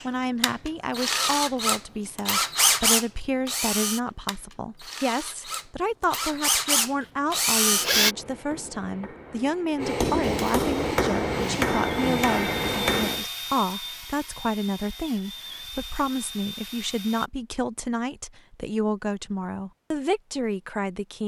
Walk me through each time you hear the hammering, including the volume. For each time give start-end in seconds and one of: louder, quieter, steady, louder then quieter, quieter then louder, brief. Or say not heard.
7.0-13.2 louder.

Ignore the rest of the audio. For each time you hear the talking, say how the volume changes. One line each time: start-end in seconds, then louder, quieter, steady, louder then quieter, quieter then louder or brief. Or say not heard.
0.0-21.2 steady.